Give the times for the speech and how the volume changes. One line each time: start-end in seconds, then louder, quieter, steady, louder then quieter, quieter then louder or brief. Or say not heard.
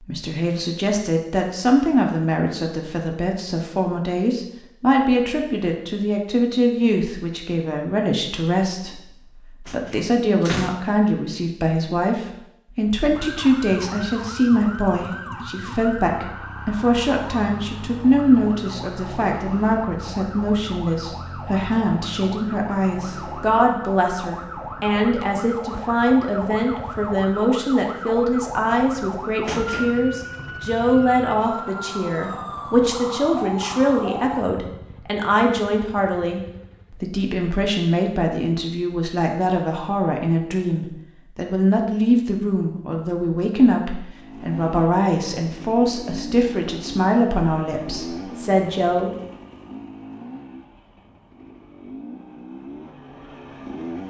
0.0-49.1 steady.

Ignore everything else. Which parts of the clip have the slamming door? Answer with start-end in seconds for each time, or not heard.
9.7-10.8, 29.4-30.0.